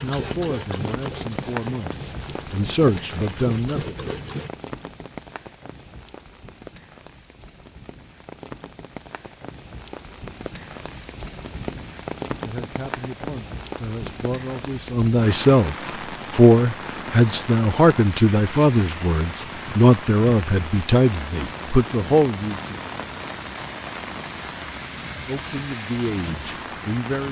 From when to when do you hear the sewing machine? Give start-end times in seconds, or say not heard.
0.0-4.5.